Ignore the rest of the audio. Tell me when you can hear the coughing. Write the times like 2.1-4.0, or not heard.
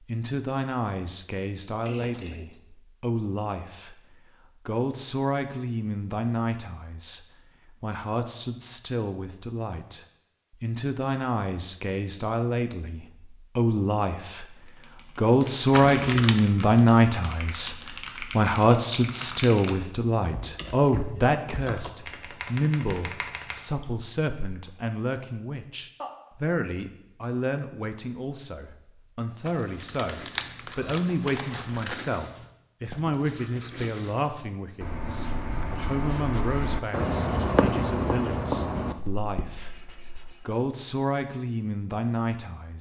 1.9-2.5, 26.0-26.6.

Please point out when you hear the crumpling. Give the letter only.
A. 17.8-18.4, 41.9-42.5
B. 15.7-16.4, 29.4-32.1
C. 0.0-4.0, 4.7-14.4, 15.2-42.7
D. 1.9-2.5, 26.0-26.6
B.